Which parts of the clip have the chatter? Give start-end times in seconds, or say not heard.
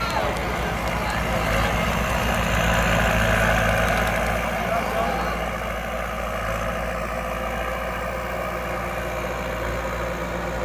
0.0-5.8.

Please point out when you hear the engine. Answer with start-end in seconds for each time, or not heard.
0.0-10.6.